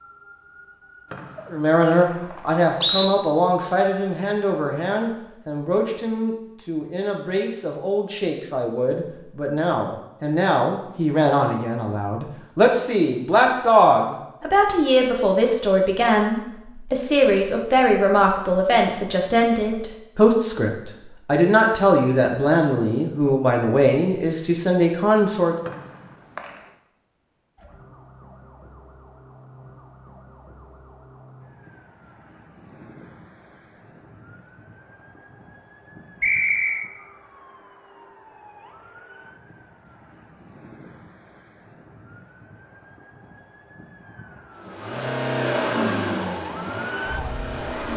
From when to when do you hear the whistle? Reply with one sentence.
The whistle can be heard from 1.1 to 3.0 s, from 25.6 to 26.6 s and from 36.2 to 36.9 s.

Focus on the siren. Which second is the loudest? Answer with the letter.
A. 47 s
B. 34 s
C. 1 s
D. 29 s
A.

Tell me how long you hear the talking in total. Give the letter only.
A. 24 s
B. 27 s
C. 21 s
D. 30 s
A.